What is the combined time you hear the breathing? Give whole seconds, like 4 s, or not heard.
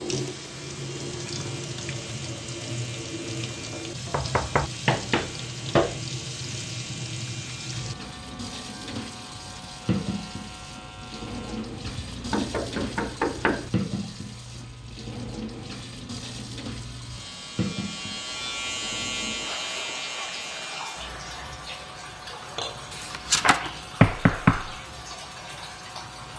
not heard.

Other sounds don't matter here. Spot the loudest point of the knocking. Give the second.
24 s.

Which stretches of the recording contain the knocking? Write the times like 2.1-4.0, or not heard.
4.0-6.0, 11.8-13.7, 22.9-24.8.